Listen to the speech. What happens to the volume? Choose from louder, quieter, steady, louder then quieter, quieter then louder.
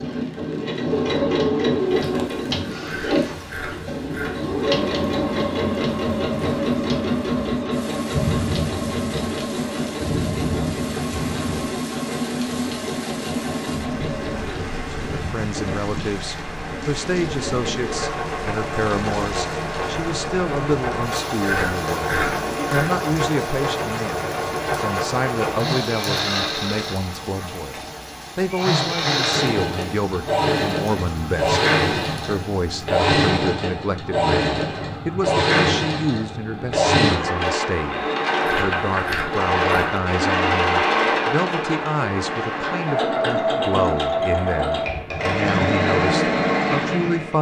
steady.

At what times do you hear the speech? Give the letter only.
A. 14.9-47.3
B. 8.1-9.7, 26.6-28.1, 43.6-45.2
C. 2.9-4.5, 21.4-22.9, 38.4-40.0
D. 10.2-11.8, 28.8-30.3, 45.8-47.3
A.